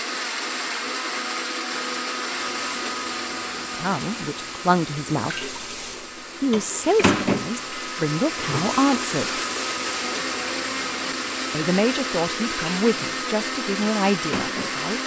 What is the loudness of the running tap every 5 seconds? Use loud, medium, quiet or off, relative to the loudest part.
medium, loud, medium.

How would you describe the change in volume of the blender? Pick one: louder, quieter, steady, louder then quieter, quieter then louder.
quieter then louder.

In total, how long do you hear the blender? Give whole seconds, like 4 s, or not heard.
15 s.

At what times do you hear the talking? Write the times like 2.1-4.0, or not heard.
3.6-5.5, 6.4-9.4, 11.5-15.0.